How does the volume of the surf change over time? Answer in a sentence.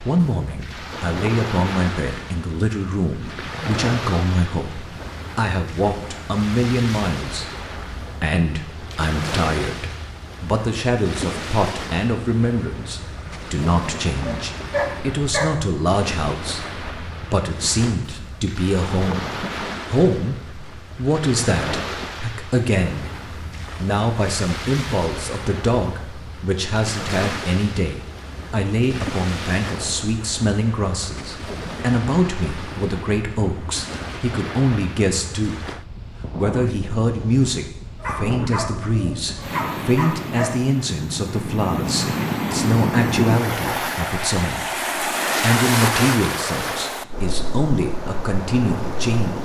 The volume of the surf goes up.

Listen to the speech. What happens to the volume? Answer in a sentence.
The loudness of the speech stays about the same.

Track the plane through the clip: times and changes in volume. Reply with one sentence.
The plane can't be heard in this clip.